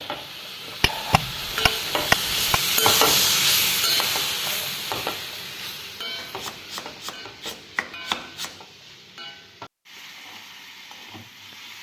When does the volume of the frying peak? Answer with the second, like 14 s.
3 s.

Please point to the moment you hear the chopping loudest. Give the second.
2 s.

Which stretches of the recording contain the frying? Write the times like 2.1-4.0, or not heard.
0.0-11.7.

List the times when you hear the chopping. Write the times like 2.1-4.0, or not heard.
0.8-2.6, 6.2-8.6.